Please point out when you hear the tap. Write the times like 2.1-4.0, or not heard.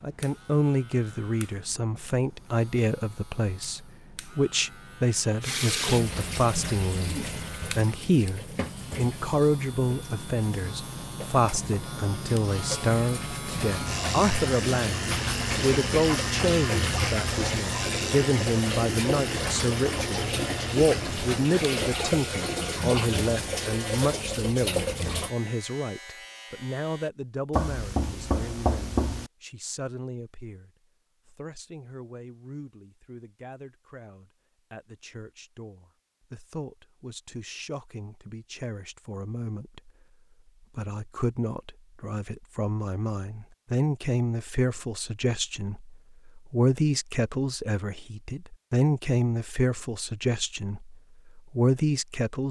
5.4-25.3.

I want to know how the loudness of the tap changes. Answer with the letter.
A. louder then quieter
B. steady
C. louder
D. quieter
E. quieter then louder
E.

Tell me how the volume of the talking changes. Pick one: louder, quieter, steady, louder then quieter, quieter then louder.
quieter then louder.